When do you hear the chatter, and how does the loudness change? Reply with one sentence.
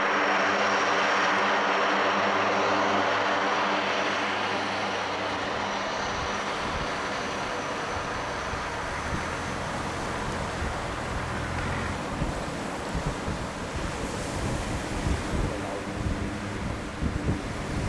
The chatter can't be heard in this clip.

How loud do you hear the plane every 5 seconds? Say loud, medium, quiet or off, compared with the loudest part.
loud, medium, quiet, quiet.